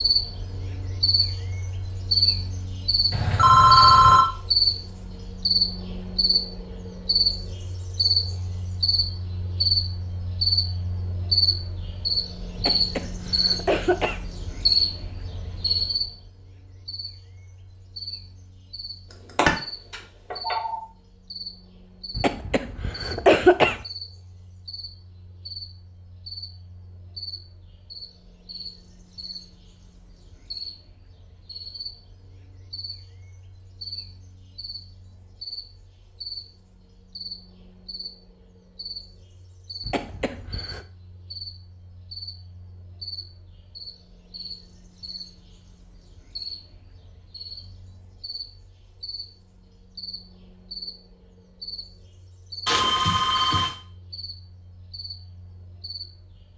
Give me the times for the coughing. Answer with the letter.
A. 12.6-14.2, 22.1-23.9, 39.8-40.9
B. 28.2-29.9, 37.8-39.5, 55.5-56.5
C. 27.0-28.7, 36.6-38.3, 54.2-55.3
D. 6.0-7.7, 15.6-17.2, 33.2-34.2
A.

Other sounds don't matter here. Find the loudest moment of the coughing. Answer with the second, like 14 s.
23 s.